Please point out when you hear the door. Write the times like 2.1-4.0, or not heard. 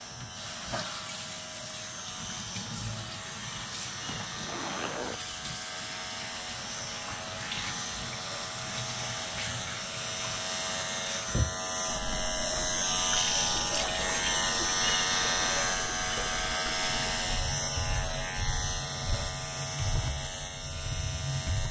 not heard.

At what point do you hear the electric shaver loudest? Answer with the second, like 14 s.
15 s.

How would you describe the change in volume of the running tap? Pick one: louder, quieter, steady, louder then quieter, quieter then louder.
steady.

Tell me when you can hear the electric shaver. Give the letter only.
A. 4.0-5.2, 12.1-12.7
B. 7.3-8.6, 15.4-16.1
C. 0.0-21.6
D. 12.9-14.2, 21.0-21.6
C.